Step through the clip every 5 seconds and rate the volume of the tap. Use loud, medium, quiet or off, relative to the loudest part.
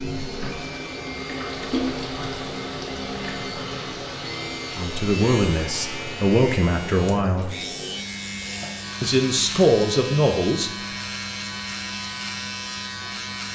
loud, medium, medium.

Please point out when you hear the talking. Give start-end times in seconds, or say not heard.
4.7-7.5, 9.0-10.7.